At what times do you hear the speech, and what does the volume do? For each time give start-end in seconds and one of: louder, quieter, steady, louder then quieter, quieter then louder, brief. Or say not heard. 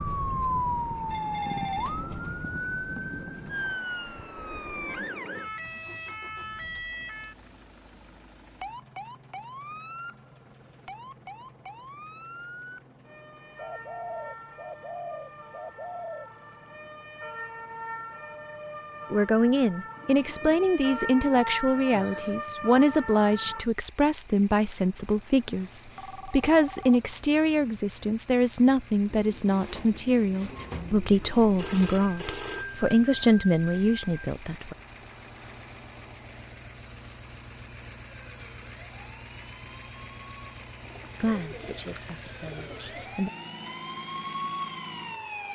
19.1-34.8 steady
41.2-43.3 brief.